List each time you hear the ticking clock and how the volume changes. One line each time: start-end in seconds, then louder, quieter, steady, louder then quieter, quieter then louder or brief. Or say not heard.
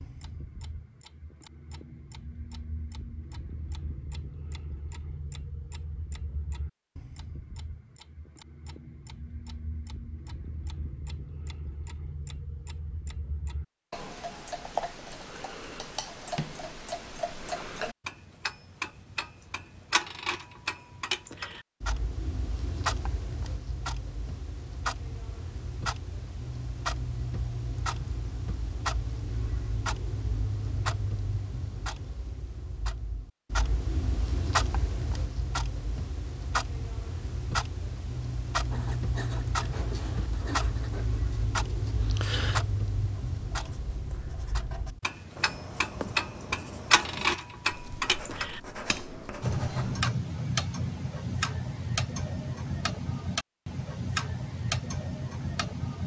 0.0-56.0 louder.